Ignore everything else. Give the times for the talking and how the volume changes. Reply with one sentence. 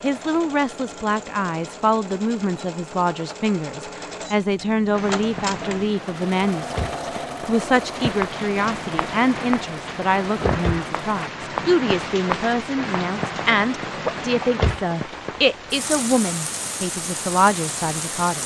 You can hear the talking from 0.0 to 18.4 s, at a steady volume.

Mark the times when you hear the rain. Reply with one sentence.
You can hear the rain from 4.9 to 18.4 s.